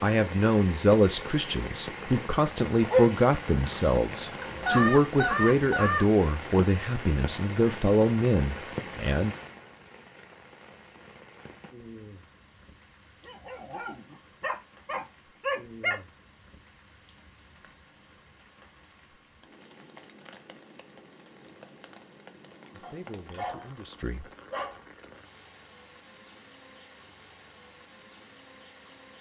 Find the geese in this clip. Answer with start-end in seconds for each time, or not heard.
4.4-6.0.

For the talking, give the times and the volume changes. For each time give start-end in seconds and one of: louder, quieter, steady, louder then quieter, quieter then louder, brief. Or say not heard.
0.0-9.3 steady
22.7-24.2 brief.